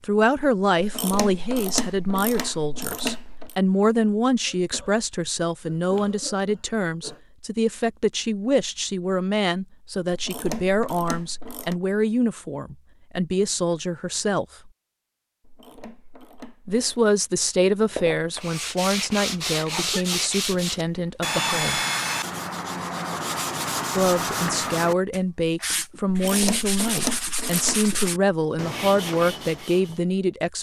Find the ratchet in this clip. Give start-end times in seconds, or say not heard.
0.8-3.5, 10.1-11.8, 15.4-17.1, 26.1-27.9.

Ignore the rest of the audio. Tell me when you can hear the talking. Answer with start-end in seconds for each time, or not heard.
0.0-14.7, 16.6-21.8, 23.9-30.5.